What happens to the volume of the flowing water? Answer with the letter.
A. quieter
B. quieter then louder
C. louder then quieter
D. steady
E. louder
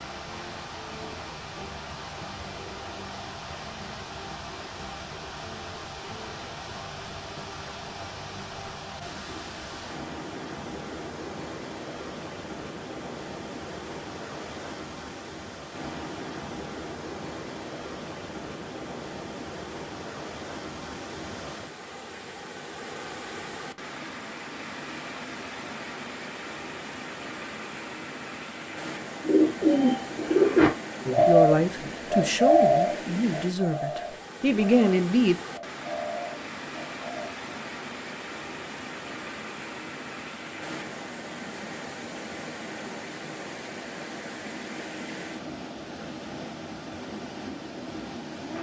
D.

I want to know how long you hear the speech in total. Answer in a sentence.
The speech can be heard for 4 seconds in total.